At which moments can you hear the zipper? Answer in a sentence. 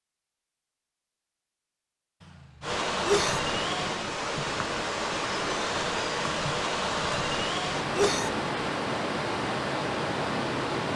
You can't hear the zipper here.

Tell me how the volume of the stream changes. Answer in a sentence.
The volume of the stream stays about the same.